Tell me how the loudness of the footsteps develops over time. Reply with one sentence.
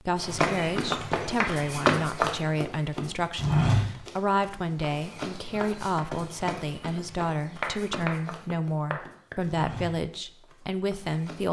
The loudness of the footsteps goes down.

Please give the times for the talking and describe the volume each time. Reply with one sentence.
The talking can be heard from 0.0 to 11.4 s, at a steady volume.